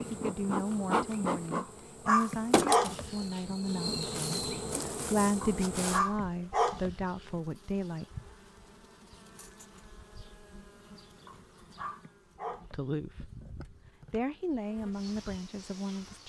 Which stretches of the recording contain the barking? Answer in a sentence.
The barking can be heard from 1.6 to 3.5 s, from 5.4 to 7.4 s and from 11.2 to 12.8 s.